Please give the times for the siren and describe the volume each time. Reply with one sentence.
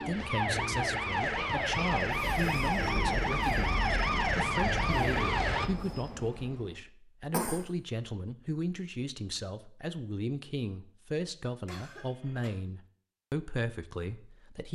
You can hear the siren from 0.0 to 5.7 s, at a steady volume.